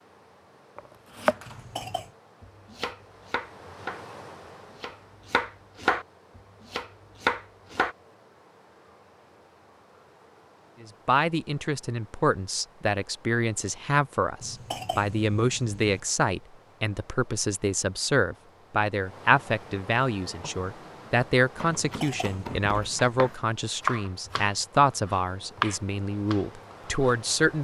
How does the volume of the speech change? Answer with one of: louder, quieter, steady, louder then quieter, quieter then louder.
steady.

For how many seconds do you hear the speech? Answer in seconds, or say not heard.
17 s.